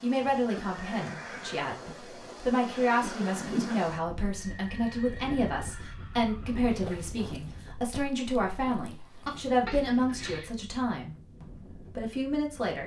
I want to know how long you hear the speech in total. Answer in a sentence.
You can hear the speech for 13 seconds altogether.